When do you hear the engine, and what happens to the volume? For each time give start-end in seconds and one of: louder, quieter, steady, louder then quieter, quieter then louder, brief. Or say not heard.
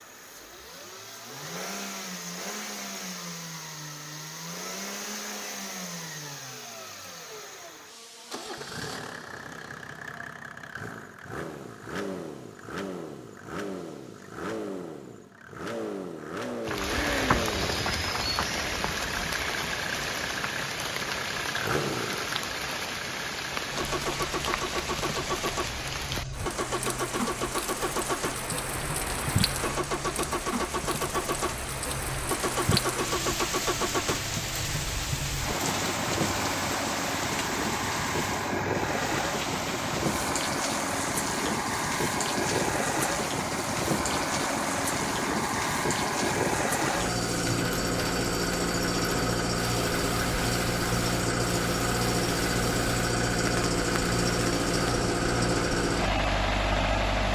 0.0-57.3 louder.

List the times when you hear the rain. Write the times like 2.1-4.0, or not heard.
16.6-57.3.